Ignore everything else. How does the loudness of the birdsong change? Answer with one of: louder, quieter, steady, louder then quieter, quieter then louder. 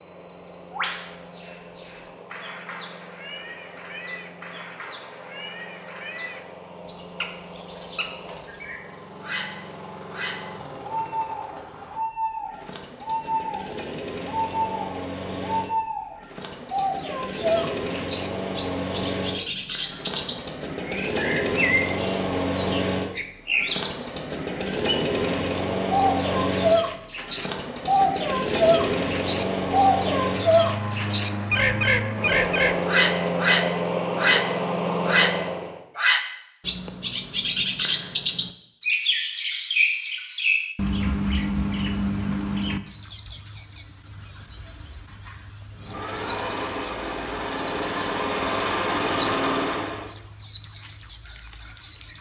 louder.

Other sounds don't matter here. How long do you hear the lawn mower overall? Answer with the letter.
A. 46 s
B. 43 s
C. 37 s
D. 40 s
D.